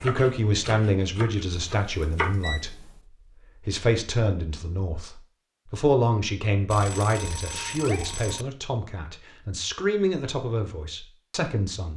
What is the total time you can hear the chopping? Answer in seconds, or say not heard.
2 s.